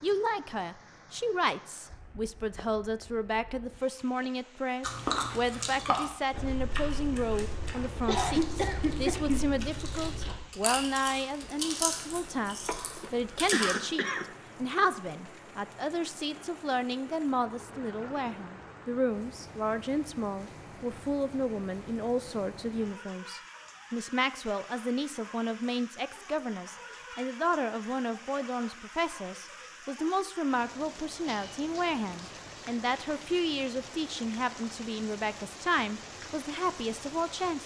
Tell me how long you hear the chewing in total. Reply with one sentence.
The chewing can be heard for 9 seconds in total.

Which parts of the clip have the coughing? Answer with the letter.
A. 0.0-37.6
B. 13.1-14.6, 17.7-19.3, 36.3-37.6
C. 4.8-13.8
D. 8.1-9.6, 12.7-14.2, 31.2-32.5
D.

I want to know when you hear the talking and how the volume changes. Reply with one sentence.
You can hear the talking from 0.0 to 37.6 s, at a steady volume.